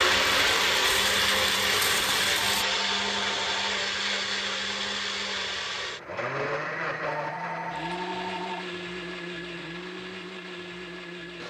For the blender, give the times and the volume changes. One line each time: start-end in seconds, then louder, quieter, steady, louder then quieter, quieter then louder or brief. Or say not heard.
0.0-11.4 quieter.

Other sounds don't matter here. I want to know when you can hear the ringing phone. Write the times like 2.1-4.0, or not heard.
2.5-3.5, 7.0-8.7.